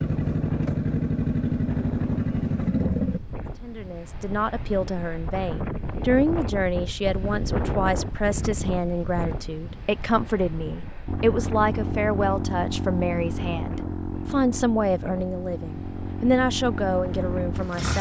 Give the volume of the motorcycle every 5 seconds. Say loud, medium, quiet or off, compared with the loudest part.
loud, off, medium, medium.